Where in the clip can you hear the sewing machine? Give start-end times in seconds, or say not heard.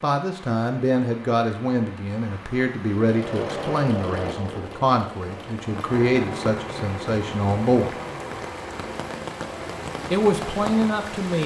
3.0-11.4.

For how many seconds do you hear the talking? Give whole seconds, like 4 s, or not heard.
9 s.